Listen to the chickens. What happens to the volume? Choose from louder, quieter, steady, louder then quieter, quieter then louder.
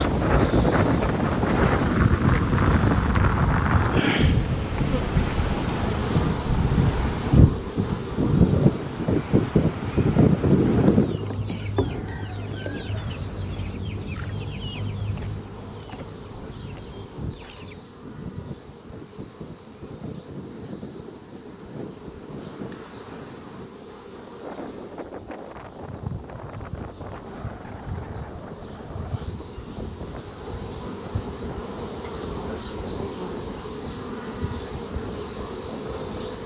quieter.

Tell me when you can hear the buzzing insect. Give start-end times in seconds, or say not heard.
0.0-36.4.